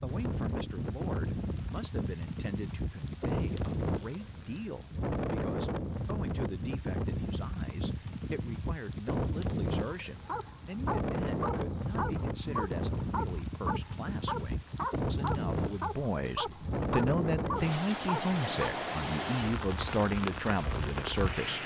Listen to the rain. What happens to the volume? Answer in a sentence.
The volume of the rain stays about the same.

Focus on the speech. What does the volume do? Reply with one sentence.
The volume of the speech goes up.